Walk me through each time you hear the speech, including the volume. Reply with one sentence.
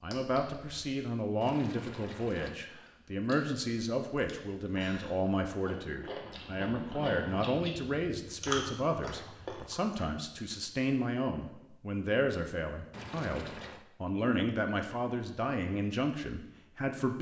You can hear the speech from 0.0 to 17.1 s, at a steady volume.